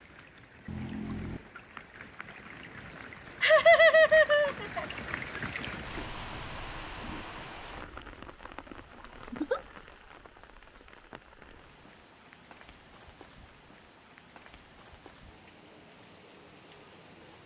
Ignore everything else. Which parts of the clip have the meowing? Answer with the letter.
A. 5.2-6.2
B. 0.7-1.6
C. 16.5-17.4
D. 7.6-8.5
B.